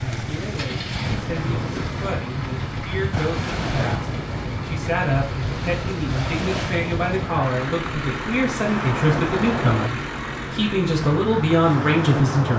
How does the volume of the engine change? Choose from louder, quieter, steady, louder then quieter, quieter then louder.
steady.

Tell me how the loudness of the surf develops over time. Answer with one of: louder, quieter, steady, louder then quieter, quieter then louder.
steady.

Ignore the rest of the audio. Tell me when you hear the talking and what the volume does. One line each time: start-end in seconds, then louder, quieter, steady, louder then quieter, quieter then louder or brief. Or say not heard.
0.1-12.5 louder.